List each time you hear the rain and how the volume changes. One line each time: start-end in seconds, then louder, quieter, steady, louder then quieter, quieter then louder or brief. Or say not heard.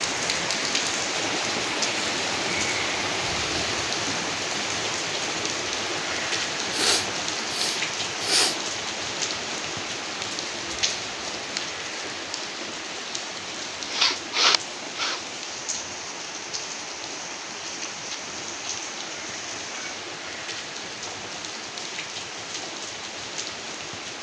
0.0-24.1 quieter.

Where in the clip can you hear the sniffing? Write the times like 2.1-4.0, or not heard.
6.7-8.6, 13.9-15.2.